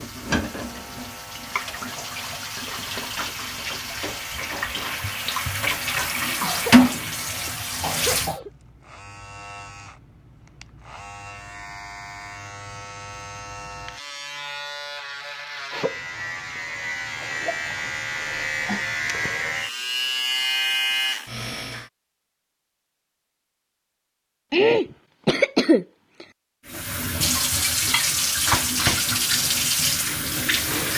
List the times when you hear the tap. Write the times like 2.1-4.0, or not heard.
0.0-8.3, 26.6-30.9.